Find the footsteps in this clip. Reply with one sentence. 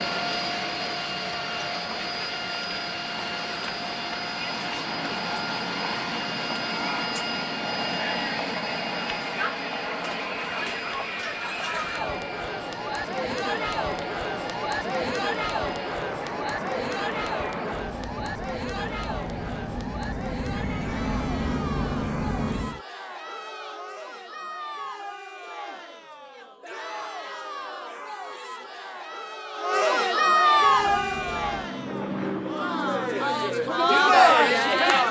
You can't hear the footsteps here.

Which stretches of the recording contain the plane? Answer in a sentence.
The plane can be heard from 0.0 to 22.8 s and from 30.5 to 35.0 s.